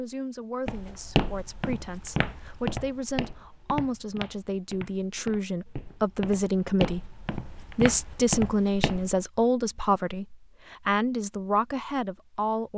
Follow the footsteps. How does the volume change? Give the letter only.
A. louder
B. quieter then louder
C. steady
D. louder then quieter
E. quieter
B.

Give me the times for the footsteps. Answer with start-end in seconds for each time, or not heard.
0.7-9.2.